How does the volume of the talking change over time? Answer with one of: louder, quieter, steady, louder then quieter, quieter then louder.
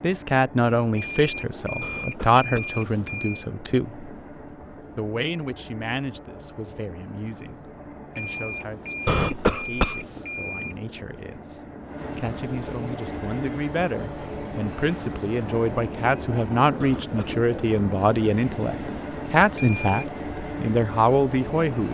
quieter then louder.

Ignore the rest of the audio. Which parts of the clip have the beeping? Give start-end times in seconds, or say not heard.
0.9-3.5, 8.2-10.8, 19.6-20.1.